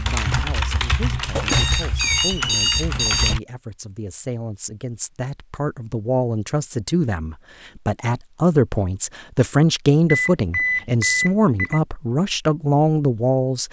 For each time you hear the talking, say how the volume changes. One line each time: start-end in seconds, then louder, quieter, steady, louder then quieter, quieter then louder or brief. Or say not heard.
0.0-13.6 louder.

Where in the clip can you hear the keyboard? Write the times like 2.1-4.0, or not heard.
0.0-3.4.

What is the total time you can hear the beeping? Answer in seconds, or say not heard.
4 s.